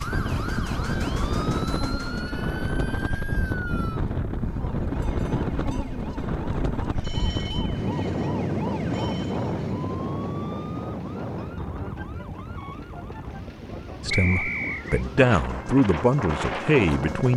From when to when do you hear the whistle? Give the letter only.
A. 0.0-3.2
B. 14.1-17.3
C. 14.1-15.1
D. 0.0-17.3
C.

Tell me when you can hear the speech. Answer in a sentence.
The speech can be heard from 14.1 to 17.3 s.